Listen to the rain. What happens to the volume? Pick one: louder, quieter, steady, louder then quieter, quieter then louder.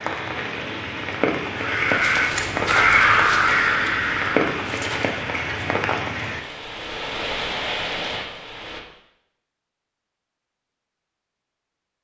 steady.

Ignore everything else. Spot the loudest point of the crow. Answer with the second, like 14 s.
3 s.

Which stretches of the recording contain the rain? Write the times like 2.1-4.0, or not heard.
0.0-8.8.